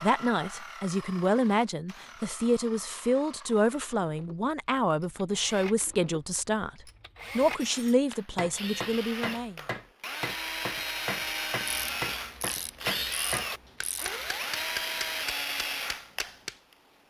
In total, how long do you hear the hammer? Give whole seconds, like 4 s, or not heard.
9 s.